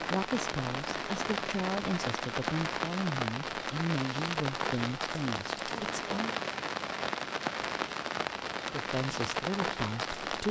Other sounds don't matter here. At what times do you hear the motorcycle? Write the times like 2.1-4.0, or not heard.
not heard.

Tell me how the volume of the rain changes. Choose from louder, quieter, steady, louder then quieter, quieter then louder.
steady.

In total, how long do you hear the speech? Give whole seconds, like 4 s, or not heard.
8 s.